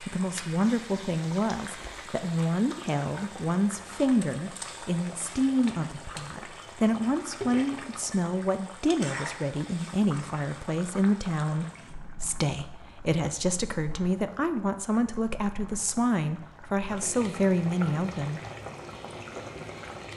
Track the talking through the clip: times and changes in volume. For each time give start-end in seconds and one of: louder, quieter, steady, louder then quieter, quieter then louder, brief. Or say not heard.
0.0-18.4 steady.